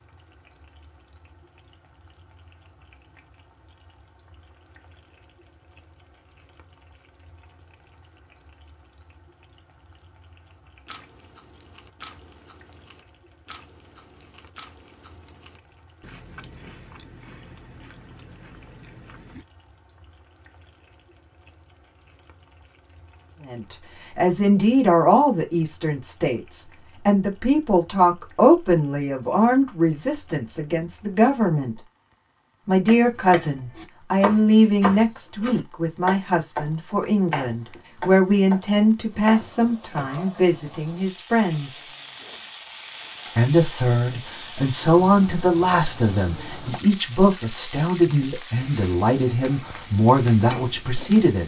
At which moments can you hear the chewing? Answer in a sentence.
You can hear the chewing from 10.8 to 19.4 s.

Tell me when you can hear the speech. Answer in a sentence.
The speech can be heard from 23.4 to 31.8 s, from 32.6 to 41.8 s and from 43.4 to 51.4 s.